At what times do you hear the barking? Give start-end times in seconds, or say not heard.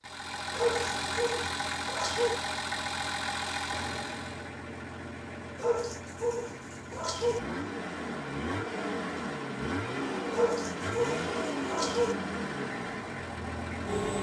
0.6-2.4, 5.5-7.4, 10.3-12.2.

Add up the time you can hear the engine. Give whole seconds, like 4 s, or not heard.
14 s.